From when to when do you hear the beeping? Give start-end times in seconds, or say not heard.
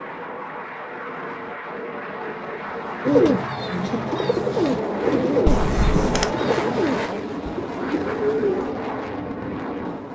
5.5-6.3.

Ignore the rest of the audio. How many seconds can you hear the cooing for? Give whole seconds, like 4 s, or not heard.
6 s.